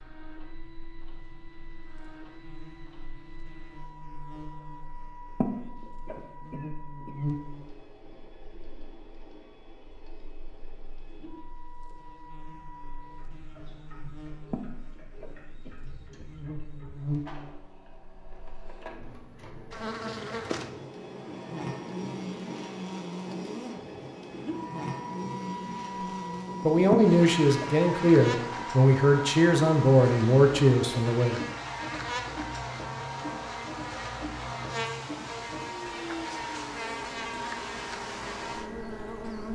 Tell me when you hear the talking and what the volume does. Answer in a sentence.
You can hear the talking from 26.6 to 31.4 s, at a steady volume.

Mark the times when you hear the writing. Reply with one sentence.
You can't hear the writing here.